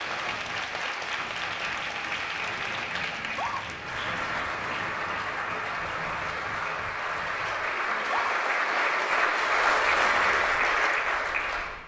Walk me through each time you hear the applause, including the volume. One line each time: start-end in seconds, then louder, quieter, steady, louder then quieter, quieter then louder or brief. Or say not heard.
0.0-11.8 louder.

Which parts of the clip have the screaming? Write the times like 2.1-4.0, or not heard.
3.1-3.6, 7.8-8.3.